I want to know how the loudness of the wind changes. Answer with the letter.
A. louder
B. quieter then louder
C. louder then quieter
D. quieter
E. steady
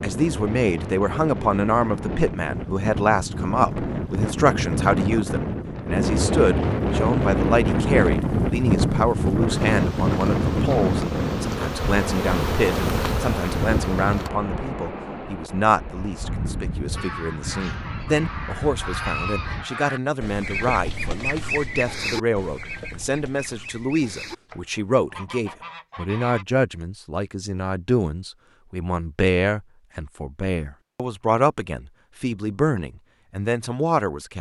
C.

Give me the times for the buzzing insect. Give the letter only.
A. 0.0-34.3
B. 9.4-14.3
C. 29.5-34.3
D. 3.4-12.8
B.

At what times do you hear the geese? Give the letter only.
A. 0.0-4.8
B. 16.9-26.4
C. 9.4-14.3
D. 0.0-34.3
B.